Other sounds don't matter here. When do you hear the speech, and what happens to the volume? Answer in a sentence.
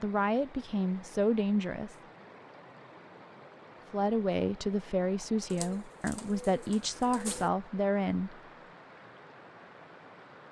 The speech can be heard briefly from 0.0 to 1.9 s; and from 3.9 to 8.4 s, at a steady volume.